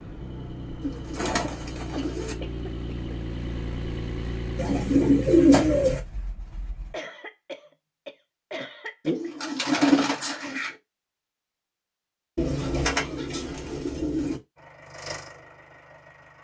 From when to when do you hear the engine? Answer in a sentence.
You can hear the engine from 0.0 to 7.0 s and from 14.6 to 16.3 s.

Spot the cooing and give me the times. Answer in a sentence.
You can hear the cooing from 0.8 to 2.4 s, from 4.5 to 6.0 s, from 9.1 to 10.7 s and from 12.3 to 14.4 s.